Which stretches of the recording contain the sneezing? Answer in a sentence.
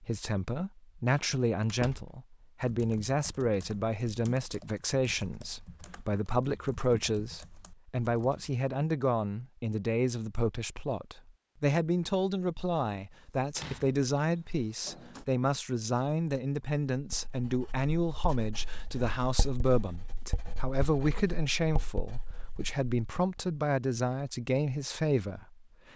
You can't hear the sneezing here.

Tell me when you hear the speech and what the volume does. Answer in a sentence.
The speech can be heard from 0.0 to 25.6 s, at a steady volume.